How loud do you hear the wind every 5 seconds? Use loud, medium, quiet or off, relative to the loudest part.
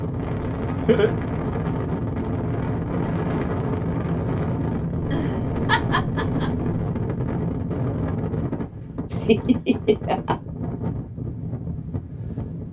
loud, loud, medium.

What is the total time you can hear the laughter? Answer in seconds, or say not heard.
4 s.